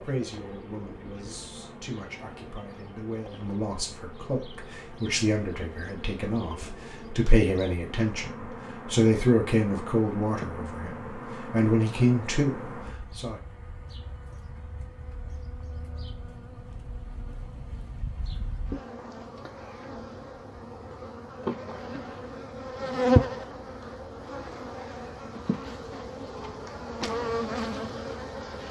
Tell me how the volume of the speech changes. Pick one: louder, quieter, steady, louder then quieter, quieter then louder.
louder.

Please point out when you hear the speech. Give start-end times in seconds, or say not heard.
0.0-13.4.